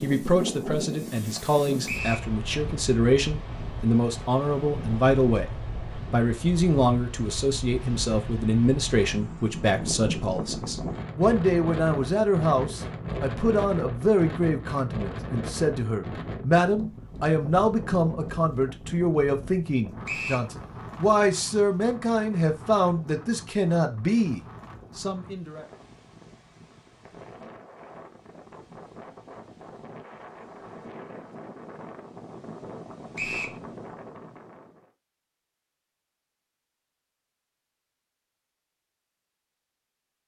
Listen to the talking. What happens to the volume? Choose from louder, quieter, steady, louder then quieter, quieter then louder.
steady.